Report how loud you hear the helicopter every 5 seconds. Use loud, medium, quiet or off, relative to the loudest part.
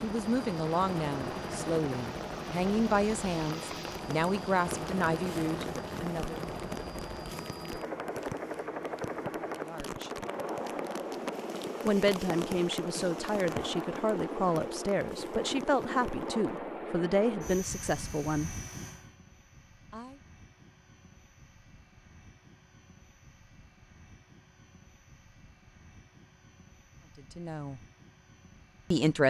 loud, loud, loud, loud, quiet, quiet.